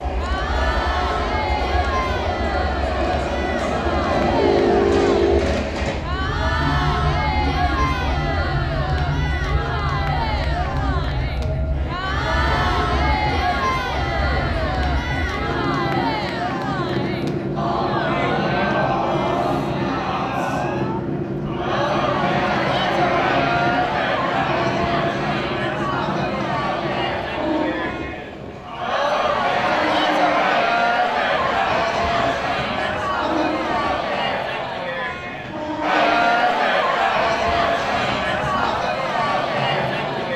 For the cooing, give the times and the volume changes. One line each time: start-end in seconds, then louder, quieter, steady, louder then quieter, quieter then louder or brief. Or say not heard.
not heard.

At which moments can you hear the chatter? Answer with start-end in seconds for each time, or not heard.
0.1-40.3.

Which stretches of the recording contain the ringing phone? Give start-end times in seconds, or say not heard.
4.3-5.4.